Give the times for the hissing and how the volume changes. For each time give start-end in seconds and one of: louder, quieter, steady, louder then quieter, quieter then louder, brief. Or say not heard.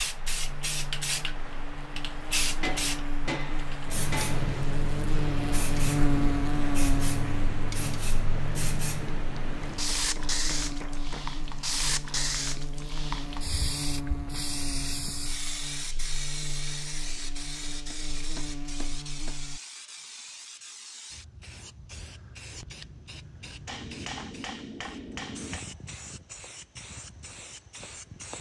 0.0-28.3 quieter.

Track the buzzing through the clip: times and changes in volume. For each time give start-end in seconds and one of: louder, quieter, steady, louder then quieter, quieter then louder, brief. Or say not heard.
0.1-19.6 louder then quieter.